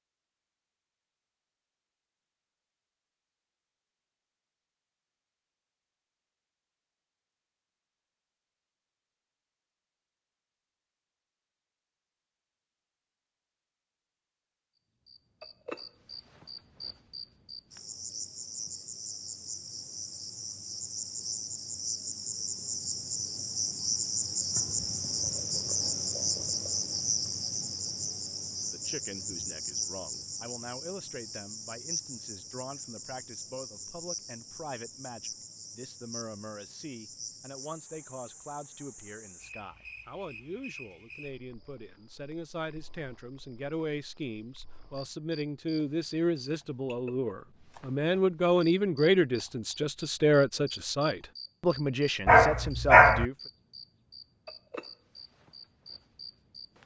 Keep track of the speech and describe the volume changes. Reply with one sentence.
The volume of the speech goes up.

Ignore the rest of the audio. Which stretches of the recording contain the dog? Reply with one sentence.
You can hear the dog from 52.2 to 53.2 s.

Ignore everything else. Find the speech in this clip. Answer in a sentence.
The speech can be heard from 28.6 to 53.4 s.